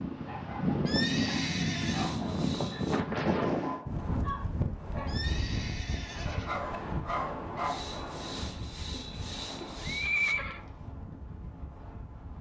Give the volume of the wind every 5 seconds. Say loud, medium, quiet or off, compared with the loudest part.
loud, medium, quiet.